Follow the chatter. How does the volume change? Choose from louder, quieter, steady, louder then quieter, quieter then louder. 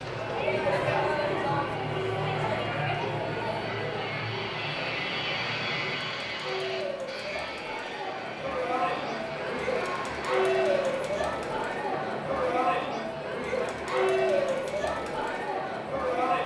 quieter then louder.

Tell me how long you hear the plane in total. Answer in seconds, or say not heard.
13 s.